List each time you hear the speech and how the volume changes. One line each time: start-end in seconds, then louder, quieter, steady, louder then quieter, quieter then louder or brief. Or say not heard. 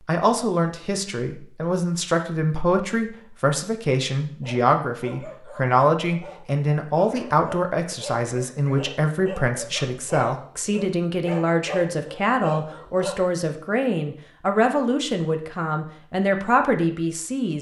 0.1-17.5 steady.